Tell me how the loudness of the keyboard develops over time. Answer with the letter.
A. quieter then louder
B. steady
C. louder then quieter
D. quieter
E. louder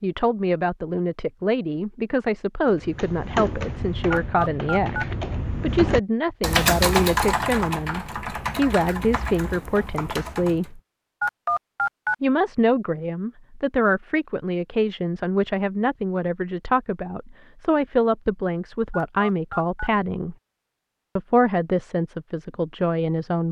C.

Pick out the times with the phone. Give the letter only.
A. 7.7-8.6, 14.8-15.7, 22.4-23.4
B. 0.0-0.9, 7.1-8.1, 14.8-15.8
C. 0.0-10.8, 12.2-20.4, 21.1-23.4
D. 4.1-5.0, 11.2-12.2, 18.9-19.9
D.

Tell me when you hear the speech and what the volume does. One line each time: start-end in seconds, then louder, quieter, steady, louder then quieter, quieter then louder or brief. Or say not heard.
0.0-10.8 steady
12.2-20.4 steady
21.1-23.4 brief.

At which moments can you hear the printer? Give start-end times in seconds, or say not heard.
not heard.